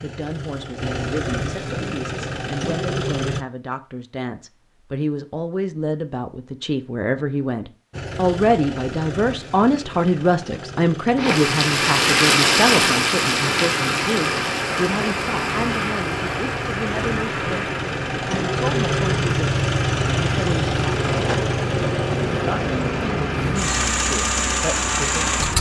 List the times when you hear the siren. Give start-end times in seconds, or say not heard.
not heard.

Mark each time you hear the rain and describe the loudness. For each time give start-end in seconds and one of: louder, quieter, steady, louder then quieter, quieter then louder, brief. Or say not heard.
11.2-25.5 quieter.